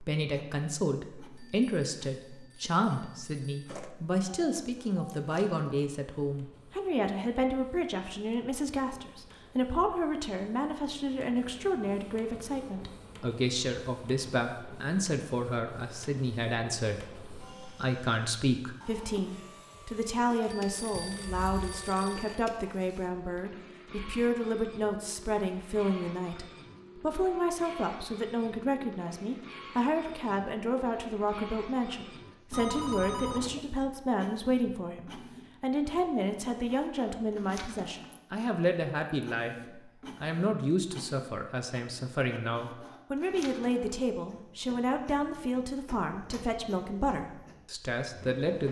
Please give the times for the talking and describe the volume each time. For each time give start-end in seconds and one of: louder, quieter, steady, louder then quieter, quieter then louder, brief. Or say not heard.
0.0-48.6 steady.